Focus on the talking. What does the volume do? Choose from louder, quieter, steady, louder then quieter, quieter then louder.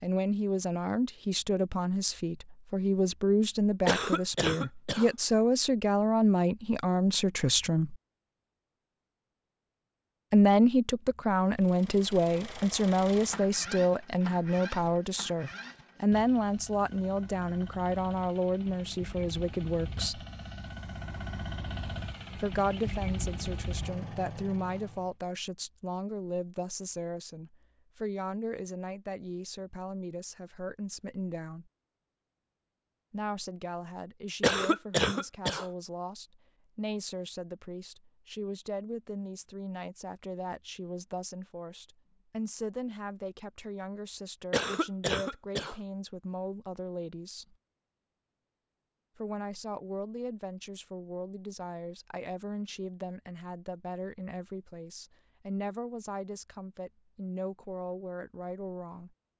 quieter.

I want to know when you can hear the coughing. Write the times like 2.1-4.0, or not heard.
3.9-5.1, 34.4-35.6, 44.5-45.8.